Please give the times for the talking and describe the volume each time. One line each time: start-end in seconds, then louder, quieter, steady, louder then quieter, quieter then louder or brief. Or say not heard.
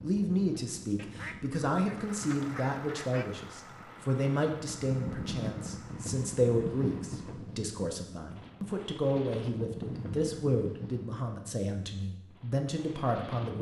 0.0-13.5 steady.